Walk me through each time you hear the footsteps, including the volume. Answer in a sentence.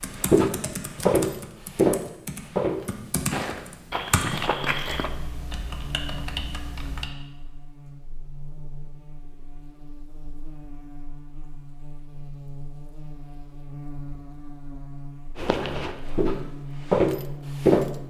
The footsteps can be heard from 0.1 to 5.1 s, getting quieter; and briefly from 15.3 to 17.9 s.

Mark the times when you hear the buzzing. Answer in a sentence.
You can hear the buzzing from 4.5 to 18.0 s.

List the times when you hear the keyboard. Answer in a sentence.
The keyboard can be heard from 0.0 to 7.1 s.